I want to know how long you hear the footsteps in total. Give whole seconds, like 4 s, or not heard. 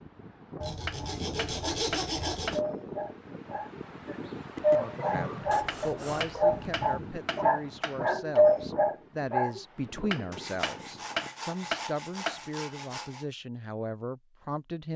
not heard.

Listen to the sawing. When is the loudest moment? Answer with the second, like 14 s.
2 s.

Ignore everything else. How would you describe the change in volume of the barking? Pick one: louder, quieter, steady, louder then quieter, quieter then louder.
louder.